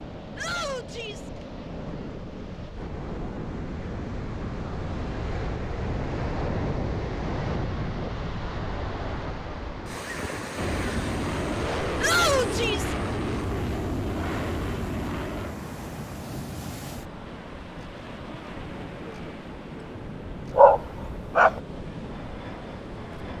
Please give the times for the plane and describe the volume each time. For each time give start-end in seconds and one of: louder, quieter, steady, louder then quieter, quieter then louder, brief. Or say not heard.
10.6-23.3 quieter.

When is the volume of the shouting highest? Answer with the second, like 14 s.
12 s.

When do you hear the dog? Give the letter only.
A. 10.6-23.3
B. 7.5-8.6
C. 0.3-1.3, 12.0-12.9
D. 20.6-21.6
D.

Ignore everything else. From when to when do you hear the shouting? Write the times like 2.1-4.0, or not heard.
0.3-1.3, 12.0-12.9.